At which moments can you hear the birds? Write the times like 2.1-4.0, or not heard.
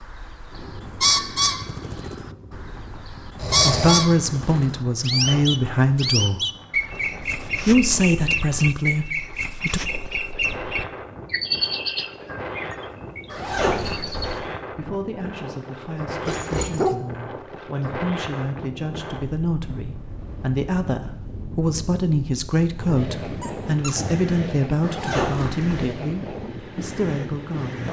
0.0-14.4.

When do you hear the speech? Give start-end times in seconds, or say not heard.
3.6-6.5, 7.7-9.8, 14.7-27.8.